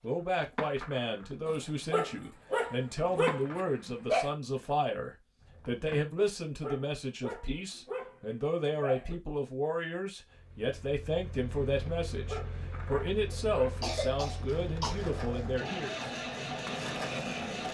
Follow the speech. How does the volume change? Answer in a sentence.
The volume of the speech stays about the same.